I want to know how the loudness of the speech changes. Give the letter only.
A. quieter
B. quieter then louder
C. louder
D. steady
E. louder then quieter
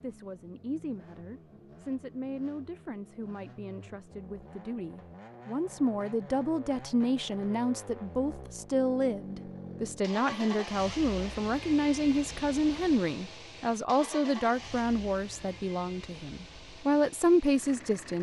C.